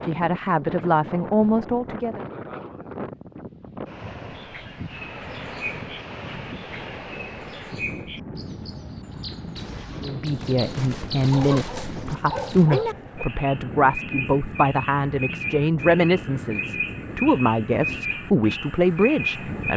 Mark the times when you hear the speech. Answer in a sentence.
The speech can be heard from 0.1 to 2.2 s and from 10.0 to 19.7 s.